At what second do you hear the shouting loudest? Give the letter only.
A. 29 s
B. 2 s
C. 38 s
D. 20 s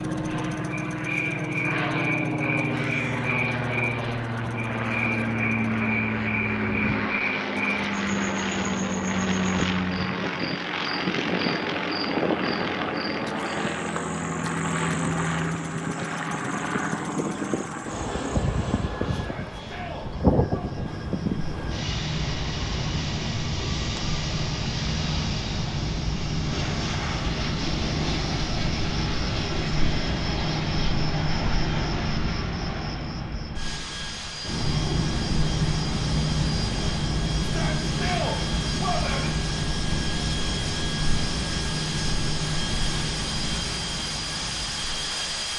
C.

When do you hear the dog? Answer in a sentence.
The dog can't be heard in this clip.